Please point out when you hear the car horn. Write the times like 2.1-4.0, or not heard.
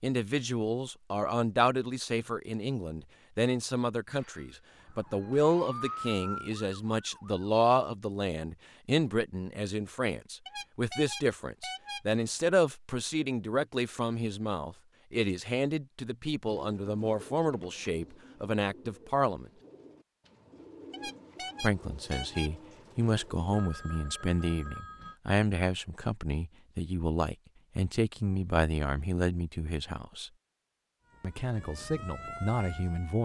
10.4-12.4, 20.9-22.9.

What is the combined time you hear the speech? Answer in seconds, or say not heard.
30 s.